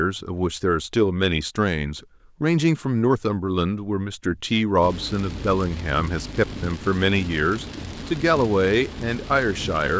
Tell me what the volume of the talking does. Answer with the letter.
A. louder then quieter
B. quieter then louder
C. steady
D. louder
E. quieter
C.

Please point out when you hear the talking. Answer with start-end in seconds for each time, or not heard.
0.0-9.9.